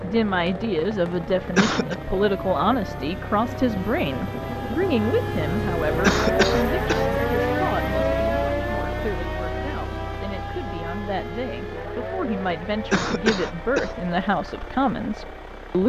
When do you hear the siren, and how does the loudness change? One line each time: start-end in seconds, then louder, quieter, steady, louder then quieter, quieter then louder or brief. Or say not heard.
0.0-15.8 louder then quieter.